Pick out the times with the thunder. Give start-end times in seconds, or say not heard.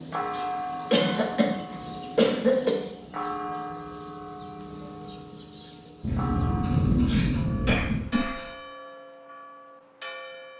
6.0-8.1.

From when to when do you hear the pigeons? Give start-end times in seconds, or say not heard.
not heard.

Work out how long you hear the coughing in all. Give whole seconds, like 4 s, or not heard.
4 s.